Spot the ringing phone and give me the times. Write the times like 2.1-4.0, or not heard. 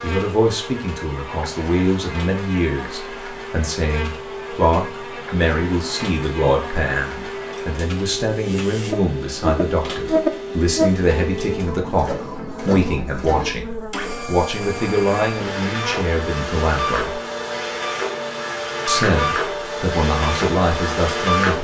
not heard.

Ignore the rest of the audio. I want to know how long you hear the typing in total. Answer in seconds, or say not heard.
not heard.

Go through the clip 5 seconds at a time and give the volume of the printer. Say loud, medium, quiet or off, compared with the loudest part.
quiet, medium, medium, loud, loud.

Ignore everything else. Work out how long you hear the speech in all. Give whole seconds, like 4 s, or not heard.
20 s.